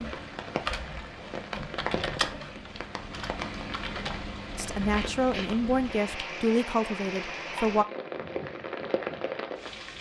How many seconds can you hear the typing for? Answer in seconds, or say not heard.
5 s.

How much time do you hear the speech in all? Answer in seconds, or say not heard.
3 s.